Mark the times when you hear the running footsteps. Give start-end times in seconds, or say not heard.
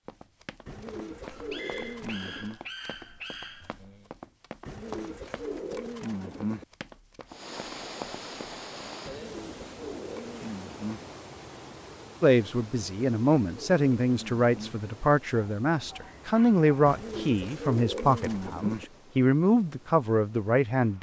0.1-8.9.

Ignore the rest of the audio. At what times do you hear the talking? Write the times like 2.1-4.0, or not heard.
12.2-20.9.